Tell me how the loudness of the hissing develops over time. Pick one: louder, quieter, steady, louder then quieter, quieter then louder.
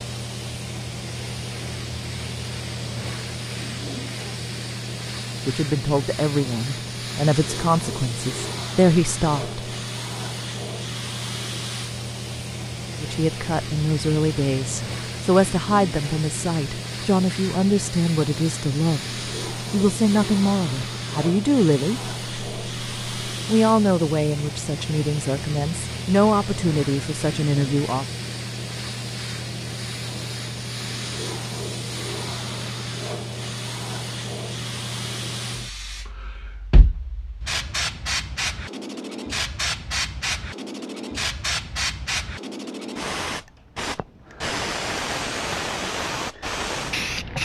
steady.